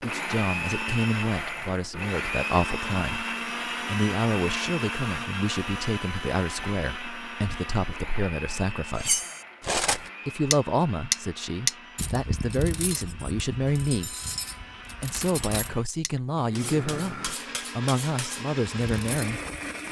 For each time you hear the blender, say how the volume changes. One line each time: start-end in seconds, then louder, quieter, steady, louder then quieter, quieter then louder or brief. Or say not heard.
0.0-19.8 quieter then louder.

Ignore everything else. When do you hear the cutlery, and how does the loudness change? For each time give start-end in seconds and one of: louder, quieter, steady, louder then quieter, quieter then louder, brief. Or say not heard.
8.9-19.4 quieter.